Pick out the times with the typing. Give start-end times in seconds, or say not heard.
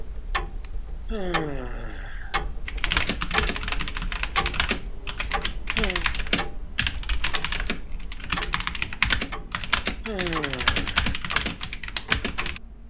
2.6-12.6.